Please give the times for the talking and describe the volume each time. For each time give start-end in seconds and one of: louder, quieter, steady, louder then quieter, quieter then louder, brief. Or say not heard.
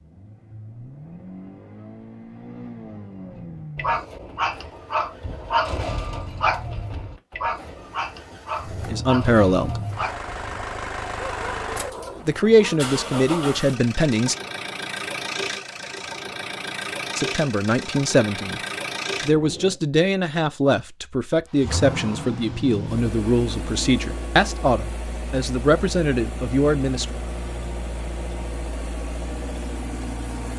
8.7-9.8 brief
12.2-14.3 brief
17.1-18.6 brief
19.2-27.1 steady.